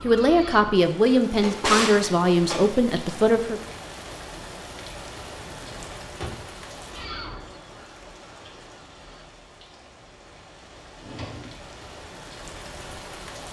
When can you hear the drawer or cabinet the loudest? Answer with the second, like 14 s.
2 s.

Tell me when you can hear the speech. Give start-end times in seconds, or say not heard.
0.0-3.6.